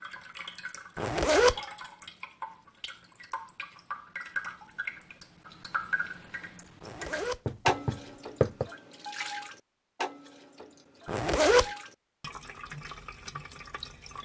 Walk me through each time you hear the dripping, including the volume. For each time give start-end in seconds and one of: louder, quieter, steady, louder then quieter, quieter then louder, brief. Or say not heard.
0.0-14.2 louder then quieter.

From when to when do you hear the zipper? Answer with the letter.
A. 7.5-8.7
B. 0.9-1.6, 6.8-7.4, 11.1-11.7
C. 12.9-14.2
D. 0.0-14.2
B.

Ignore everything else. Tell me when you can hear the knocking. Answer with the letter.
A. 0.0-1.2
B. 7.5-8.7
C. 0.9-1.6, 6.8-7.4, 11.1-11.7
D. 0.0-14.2
B.